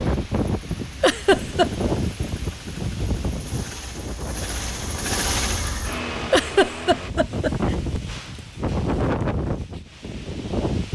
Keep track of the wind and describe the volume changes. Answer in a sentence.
The volume of the wind goes down, then up.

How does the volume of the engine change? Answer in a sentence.
The volume of the engine goes up.